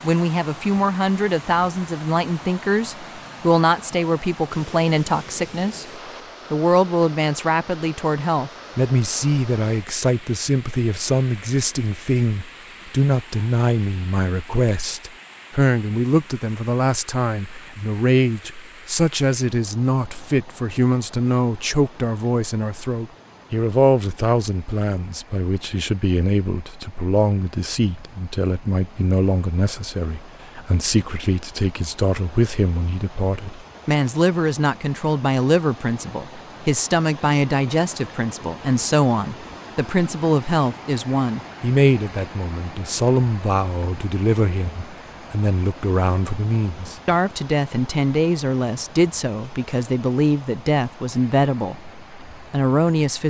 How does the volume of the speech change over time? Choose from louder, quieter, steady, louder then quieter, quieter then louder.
steady.